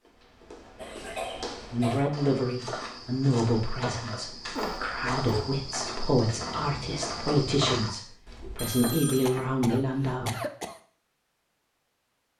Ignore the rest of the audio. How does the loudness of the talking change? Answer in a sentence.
The loudness of the talking goes down, then up.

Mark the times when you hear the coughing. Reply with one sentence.
The coughing can be heard from 0.8 to 2.0 s, from 4.5 to 5.5 s and from 9.2 to 10.8 s.